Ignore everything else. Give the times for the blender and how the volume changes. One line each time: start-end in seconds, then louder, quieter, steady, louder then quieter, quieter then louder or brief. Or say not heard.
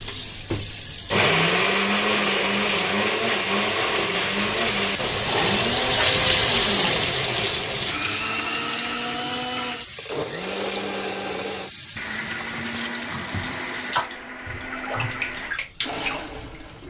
0.0-16.8 quieter.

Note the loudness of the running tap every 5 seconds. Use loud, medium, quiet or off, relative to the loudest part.
medium, loud, medium, medium.